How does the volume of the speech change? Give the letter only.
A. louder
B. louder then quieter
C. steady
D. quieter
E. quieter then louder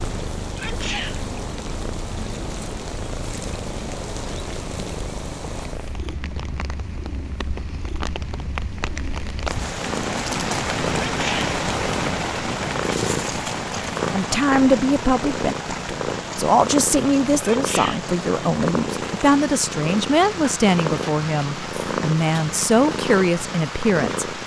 C.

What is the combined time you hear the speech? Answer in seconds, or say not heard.
10 s.